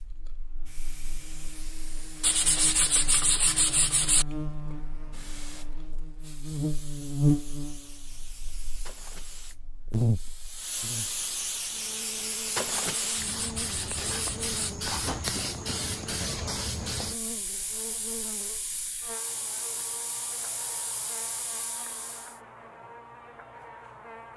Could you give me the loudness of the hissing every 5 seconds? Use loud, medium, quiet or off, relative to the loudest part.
quiet, quiet, loud, loud, medium.